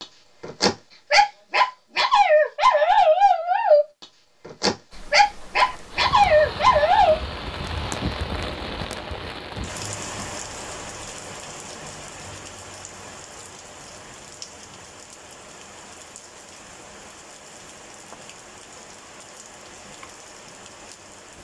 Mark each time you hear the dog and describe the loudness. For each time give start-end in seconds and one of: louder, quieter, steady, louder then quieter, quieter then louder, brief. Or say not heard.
0.0-7.2 steady.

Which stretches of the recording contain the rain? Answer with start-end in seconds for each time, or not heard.
4.9-21.3.